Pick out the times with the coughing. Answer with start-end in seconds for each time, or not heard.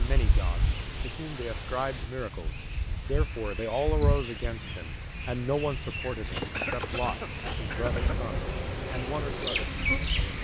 6.5-8.2.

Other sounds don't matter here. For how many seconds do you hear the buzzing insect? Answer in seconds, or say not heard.
4 s.